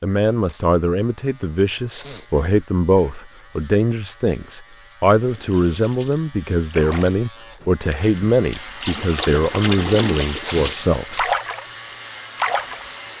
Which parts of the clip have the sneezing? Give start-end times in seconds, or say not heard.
1.9-2.5, 10.4-10.8.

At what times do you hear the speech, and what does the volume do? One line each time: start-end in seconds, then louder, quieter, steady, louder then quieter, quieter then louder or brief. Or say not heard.
0.0-11.3 steady.